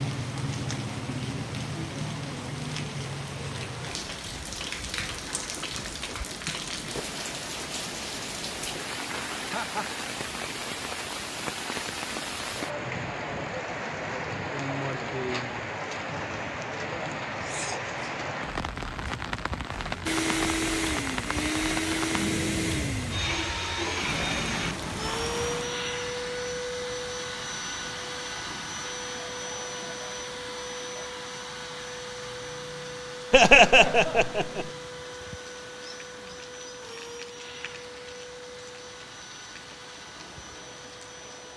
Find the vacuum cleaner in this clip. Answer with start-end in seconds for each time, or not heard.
20.1-41.5.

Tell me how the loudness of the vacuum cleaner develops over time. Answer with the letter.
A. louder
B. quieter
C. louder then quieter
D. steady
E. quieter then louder
B.